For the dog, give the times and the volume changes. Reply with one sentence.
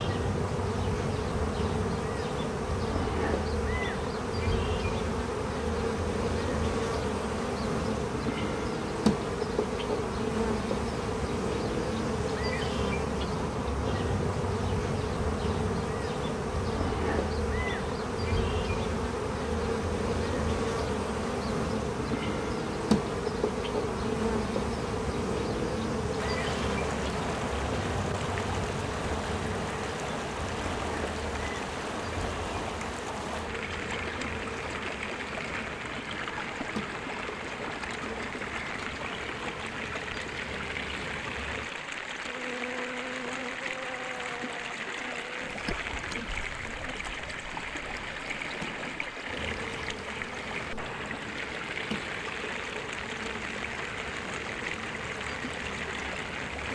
You can't hear the dog here.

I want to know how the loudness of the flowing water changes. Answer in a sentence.
The volume of the flowing water stays about the same.